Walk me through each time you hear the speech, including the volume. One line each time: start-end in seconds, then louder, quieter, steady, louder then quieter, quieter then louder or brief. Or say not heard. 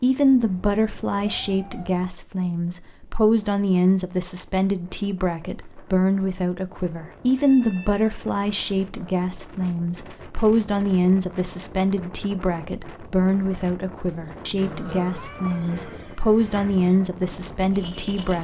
0.0-18.3 steady.